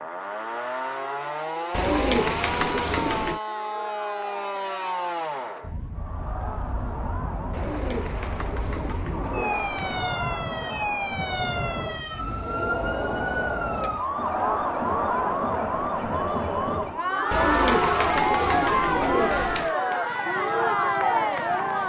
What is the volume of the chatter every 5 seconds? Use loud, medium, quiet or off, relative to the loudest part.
quiet, quiet, medium, loud, loud.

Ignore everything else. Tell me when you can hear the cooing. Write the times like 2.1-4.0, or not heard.
1.7-3.4, 7.5-10.1, 17.3-19.8.